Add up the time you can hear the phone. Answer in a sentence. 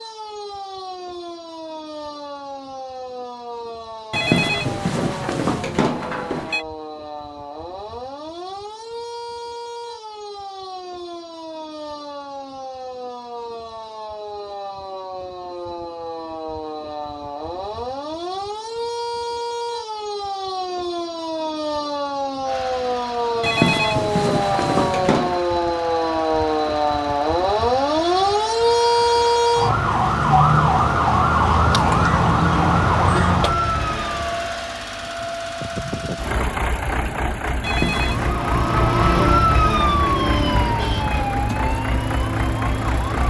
You can hear the phone for 5 seconds altogether.